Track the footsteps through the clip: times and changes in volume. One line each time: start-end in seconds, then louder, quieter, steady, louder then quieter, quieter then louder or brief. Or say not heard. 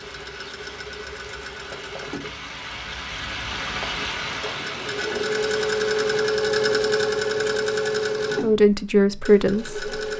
not heard.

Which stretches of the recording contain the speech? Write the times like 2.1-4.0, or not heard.
8.4-9.8.